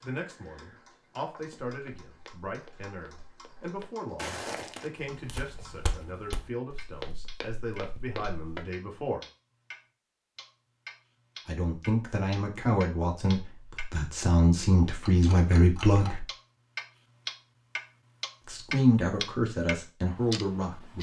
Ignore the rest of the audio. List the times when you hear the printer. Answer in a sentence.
The printer can't be heard in this clip.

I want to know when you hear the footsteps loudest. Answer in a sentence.
The volume of the footsteps peaks at 4 seconds.